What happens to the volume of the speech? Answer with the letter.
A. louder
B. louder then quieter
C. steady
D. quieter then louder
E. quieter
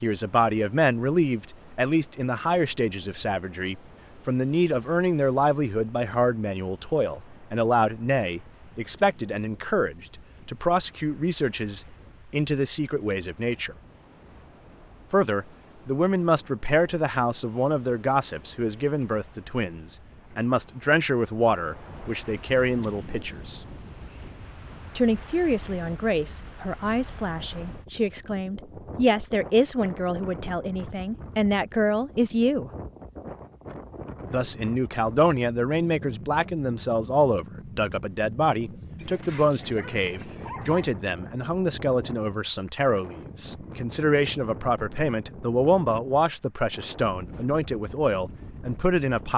C.